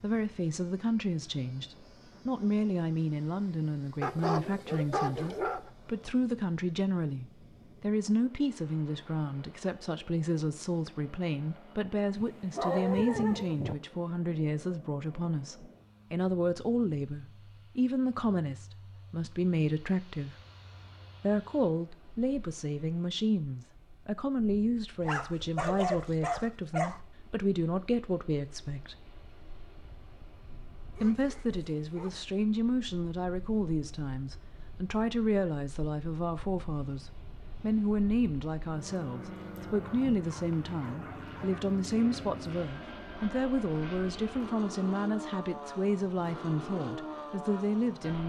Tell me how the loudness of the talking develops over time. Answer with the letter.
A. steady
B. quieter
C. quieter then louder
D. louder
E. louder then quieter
A.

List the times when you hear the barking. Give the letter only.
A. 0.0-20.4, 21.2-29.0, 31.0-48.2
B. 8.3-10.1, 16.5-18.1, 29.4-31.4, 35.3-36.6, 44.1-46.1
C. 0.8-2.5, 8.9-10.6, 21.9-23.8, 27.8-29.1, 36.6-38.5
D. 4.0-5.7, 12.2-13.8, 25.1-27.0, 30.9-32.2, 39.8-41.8
D.